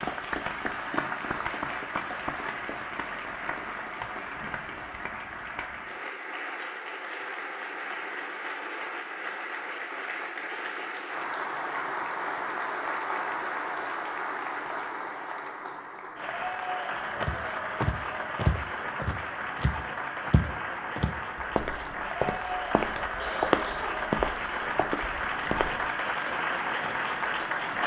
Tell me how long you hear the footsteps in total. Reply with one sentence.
The footsteps can be heard for 9 seconds in total.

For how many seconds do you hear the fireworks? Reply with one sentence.
The fireworks can't be heard in this clip.